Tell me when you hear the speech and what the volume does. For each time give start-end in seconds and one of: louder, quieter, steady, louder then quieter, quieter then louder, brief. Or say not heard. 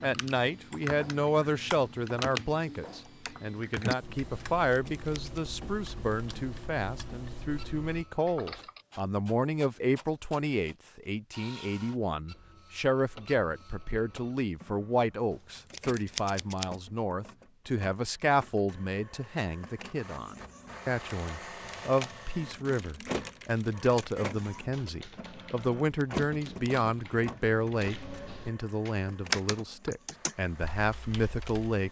0.0-31.8 steady.